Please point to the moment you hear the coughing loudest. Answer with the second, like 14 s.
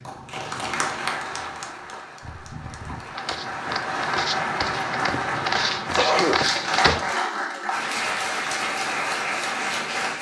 6 s.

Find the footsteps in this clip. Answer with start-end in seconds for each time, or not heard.
3.1-7.1.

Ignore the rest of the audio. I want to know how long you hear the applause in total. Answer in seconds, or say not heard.
10 s.